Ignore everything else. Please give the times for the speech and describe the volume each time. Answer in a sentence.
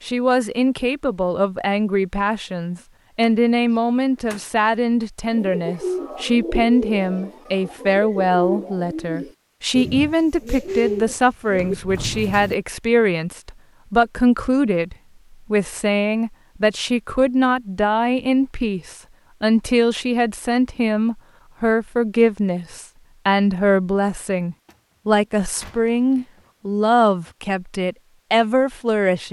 You can hear the speech from 0.0 to 29.2 s, at a steady volume.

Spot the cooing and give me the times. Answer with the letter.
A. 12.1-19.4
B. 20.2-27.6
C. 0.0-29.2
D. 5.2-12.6
D.